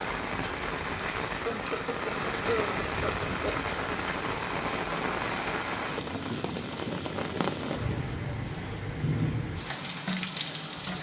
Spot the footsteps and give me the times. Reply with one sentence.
The footsteps can't be heard in this clip.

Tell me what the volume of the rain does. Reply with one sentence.
The volume of the rain stays about the same.